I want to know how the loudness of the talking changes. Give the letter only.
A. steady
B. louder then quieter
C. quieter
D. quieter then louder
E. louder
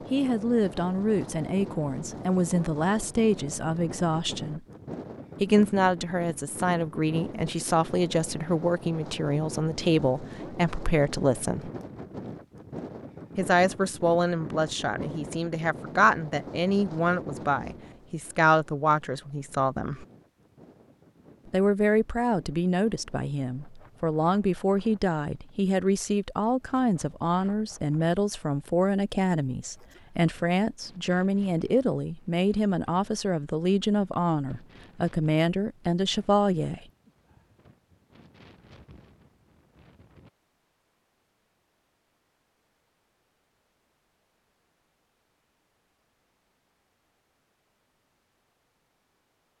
A.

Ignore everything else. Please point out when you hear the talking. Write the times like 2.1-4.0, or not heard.
0.1-4.6, 5.4-11.7, 13.3-20.1, 21.5-36.8.